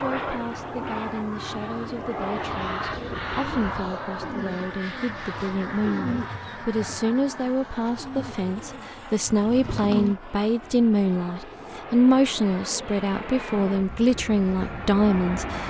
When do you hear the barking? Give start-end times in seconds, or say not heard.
not heard.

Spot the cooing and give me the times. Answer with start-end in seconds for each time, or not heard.
2.2-10.2.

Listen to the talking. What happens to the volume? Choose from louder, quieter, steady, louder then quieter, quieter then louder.
louder.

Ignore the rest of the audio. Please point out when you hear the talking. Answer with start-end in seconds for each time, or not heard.
0.0-15.6.